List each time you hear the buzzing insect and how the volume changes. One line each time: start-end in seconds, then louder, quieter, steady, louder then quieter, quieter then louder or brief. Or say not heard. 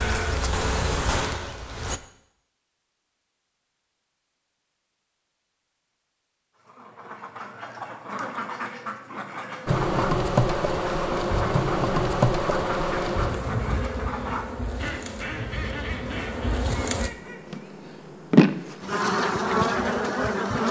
0.0-2.0 brief
9.7-20.6 quieter then louder.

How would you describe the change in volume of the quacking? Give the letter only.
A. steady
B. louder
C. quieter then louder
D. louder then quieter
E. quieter
A.